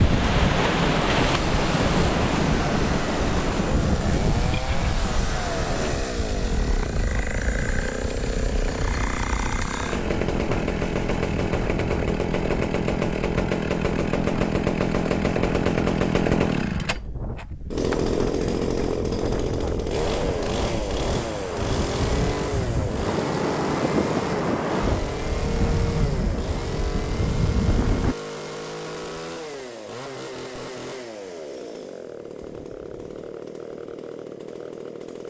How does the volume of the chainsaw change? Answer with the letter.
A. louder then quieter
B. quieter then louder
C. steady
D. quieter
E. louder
A.